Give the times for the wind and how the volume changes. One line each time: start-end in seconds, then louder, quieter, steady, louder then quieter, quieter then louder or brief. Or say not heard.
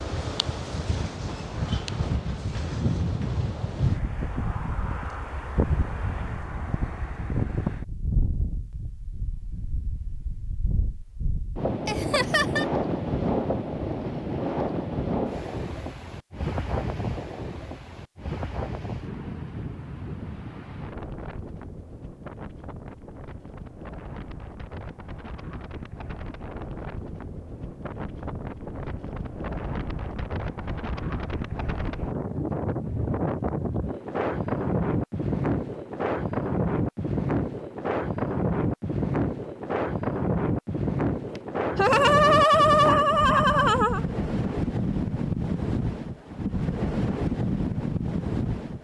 0.0-48.7 quieter then louder.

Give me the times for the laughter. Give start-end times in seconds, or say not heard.
11.8-12.7, 41.3-44.0.